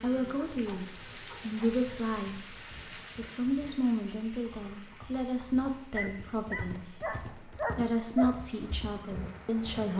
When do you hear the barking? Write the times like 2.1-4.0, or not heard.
0.3-1.8, 5.9-8.3.